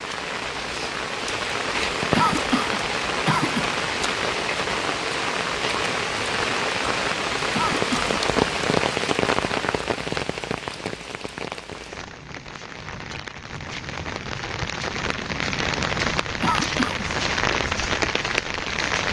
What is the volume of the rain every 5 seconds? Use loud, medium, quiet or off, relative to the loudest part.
loud, loud, medium, loud.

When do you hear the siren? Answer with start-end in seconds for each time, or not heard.
not heard.